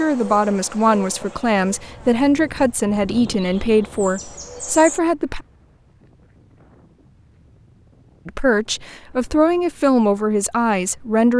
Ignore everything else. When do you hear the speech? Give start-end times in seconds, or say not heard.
0.0-5.4, 8.2-11.3.